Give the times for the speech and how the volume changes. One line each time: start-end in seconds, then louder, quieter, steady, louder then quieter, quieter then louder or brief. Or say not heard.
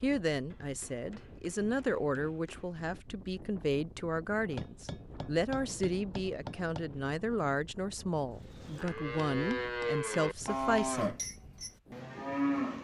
0.0-11.2 steady.